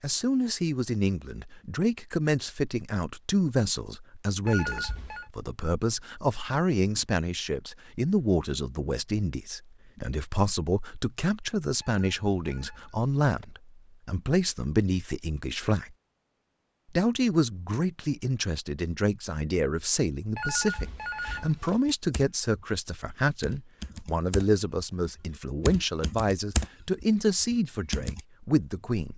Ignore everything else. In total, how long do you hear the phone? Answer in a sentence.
You can hear the phone for 4 seconds altogether.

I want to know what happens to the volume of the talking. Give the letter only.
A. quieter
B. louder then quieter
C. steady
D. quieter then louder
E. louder
C.